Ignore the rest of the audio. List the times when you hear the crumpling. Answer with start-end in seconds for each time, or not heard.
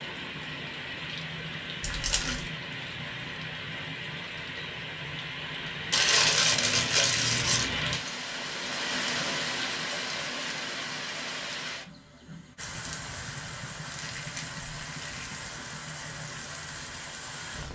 1.8-2.5, 5.9-8.2, 13.9-15.4.